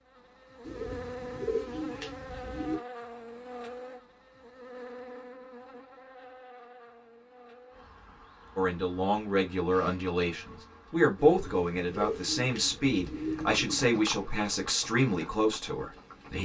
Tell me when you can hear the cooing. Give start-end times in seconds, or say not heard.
0.7-2.8, 11.2-13.9.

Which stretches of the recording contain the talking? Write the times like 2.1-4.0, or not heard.
8.6-16.4.